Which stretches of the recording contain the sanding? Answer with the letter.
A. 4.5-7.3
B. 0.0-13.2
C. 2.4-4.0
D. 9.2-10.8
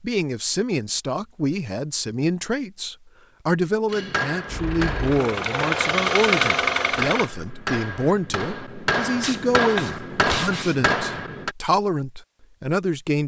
D.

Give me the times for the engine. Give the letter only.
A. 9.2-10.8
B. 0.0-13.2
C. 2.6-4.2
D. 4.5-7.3
D.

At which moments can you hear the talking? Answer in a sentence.
You can hear the talking from 0.0 to 13.2 s.